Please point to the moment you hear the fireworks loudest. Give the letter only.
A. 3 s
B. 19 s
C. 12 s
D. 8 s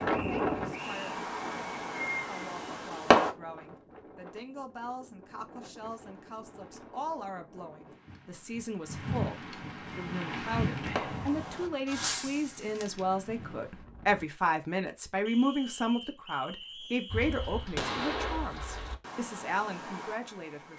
A.